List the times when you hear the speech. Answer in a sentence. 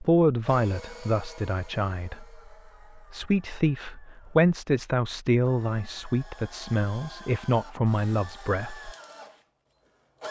You can hear the speech from 0.0 to 8.9 s.